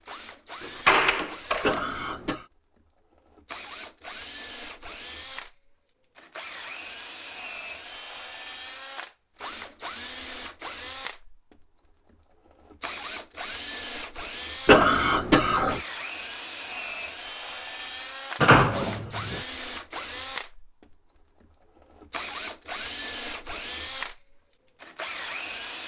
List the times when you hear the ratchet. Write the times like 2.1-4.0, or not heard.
not heard.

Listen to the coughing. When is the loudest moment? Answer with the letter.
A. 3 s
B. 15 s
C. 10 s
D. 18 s
B.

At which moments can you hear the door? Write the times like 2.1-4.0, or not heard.
0.6-1.8, 18.4-19.4.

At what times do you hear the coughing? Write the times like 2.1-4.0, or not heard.
1.6-2.5, 14.7-15.8.